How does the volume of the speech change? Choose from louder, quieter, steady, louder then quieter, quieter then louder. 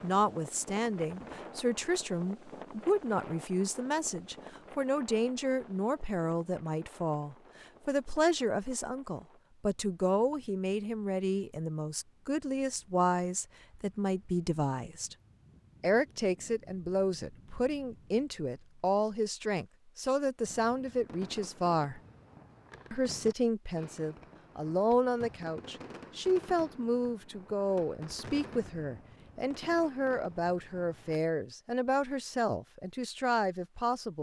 steady.